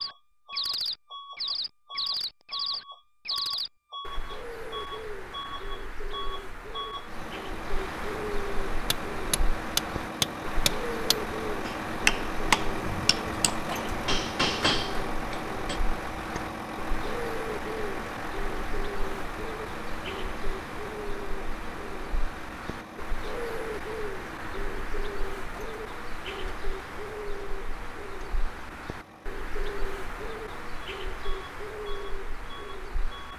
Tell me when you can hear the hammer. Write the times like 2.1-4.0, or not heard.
8.9-15.8.